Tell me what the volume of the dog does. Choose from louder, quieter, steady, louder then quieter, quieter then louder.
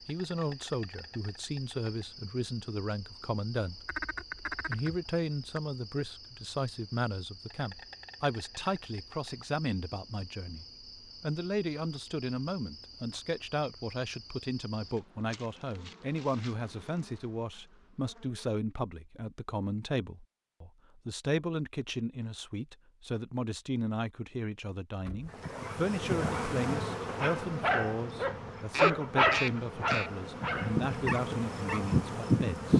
louder then quieter.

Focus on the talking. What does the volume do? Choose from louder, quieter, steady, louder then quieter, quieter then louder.
steady.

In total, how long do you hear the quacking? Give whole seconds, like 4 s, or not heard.
3 s.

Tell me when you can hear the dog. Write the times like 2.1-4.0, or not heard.
25.2-31.9.